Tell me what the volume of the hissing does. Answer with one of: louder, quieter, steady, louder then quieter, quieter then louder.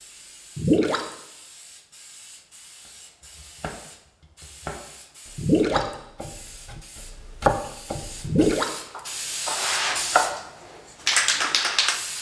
louder.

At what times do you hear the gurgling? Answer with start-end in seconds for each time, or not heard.
0.6-1.1, 5.3-6.0, 8.2-8.7.